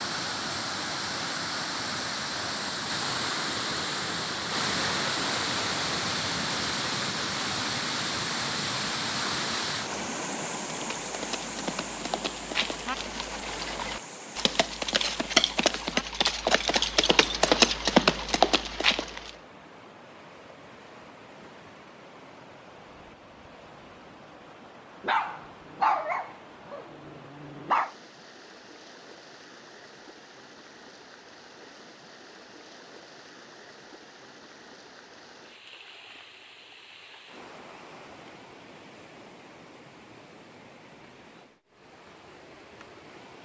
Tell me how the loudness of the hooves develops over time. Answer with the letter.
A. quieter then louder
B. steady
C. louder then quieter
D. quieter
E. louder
E.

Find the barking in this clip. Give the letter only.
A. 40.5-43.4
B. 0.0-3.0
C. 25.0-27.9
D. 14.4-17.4
C.